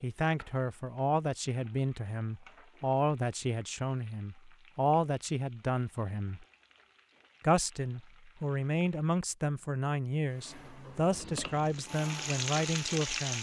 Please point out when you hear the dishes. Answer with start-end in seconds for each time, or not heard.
not heard.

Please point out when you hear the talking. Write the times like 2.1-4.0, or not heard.
0.0-6.5, 7.4-13.3.